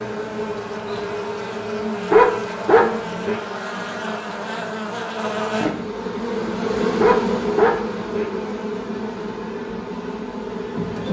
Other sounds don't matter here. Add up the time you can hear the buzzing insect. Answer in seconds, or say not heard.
11 s.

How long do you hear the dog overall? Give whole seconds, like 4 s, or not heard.
3 s.